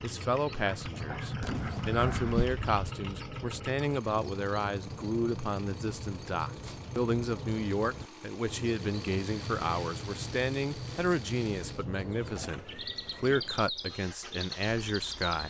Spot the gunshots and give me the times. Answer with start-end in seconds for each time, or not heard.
1.4-2.9.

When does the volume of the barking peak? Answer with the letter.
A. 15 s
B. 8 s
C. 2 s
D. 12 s
C.